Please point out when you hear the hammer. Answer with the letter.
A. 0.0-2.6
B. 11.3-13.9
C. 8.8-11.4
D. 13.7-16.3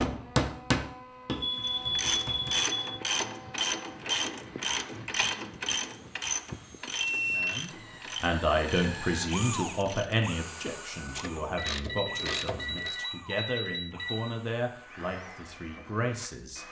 A.